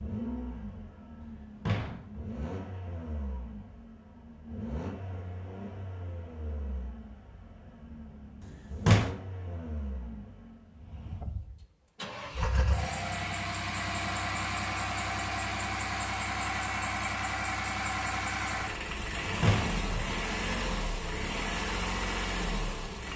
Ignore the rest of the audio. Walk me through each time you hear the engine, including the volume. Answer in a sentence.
You can hear the engine from 0.0 to 23.1 s, getting louder.